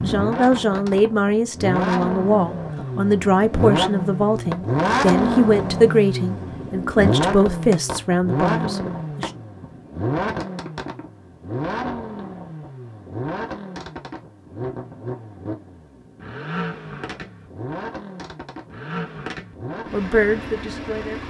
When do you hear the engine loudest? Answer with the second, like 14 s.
5 s.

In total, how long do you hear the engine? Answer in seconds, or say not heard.
21 s.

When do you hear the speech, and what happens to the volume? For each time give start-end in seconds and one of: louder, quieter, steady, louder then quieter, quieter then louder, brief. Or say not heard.
0.0-9.3 steady
19.9-21.2 brief.